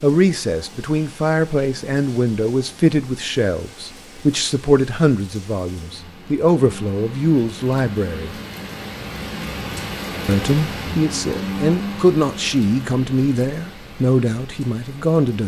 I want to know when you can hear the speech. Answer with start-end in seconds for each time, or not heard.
0.0-8.3, 10.2-15.4.